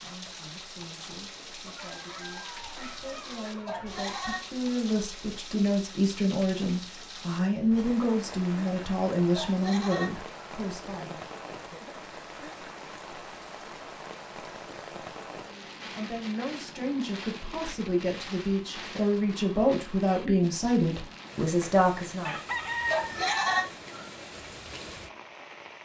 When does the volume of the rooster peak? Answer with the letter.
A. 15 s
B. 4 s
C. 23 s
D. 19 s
C.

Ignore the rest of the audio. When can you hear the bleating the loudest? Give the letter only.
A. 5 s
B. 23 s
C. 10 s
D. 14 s
B.